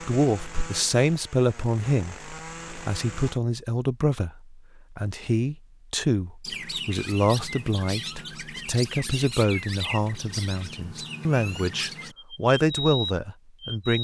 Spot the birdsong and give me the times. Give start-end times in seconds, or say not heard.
6.4-13.9.